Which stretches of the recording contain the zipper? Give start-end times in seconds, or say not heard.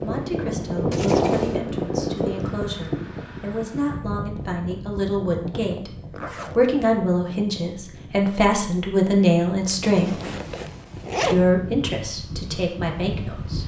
0.9-1.6, 6.1-6.6, 9.8-11.4.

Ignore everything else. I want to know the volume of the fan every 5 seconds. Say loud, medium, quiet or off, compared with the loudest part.
loud, quiet, medium.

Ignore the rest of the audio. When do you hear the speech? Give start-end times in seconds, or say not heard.
0.0-5.9, 6.5-10.2, 11.3-13.6.